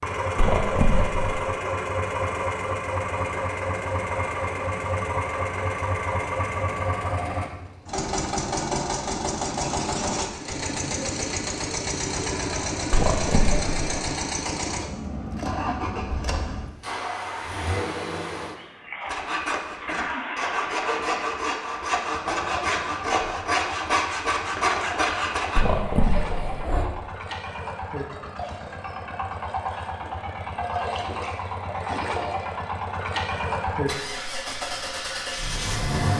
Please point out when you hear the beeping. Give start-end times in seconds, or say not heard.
0.3-1.4, 12.9-13.9, 25.6-26.9.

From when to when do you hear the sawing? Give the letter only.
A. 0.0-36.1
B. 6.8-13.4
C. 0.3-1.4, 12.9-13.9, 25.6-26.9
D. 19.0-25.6
D.